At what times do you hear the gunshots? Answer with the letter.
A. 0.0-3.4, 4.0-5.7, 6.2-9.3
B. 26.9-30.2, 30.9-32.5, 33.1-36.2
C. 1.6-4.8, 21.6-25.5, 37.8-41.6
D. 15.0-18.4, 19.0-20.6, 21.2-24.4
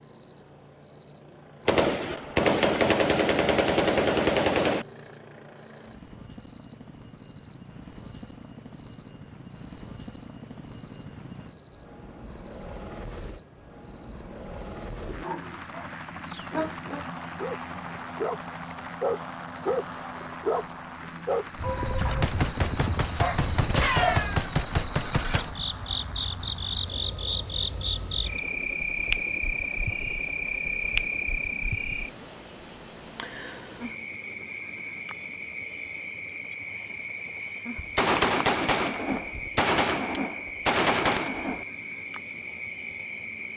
C.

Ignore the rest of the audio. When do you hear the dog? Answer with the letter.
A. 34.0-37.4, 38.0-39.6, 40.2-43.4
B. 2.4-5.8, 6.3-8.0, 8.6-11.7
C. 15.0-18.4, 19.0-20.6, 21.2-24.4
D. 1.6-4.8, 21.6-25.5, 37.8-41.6
C.